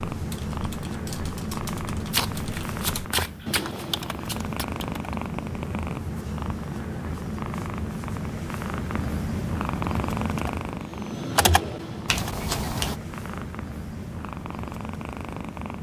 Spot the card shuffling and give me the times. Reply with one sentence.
The card shuffling can be heard from 2.1 to 4.7 s and from 12.1 to 13.0 s.